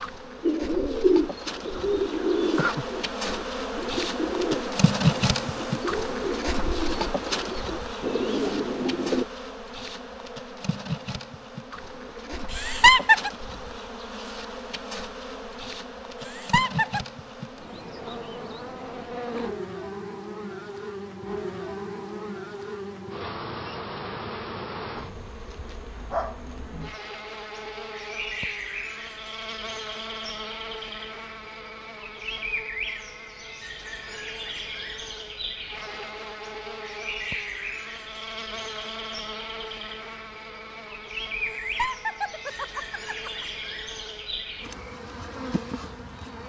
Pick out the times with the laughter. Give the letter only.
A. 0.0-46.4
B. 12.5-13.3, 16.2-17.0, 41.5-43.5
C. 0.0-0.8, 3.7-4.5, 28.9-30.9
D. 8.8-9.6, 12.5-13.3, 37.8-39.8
B.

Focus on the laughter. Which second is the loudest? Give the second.
13 s.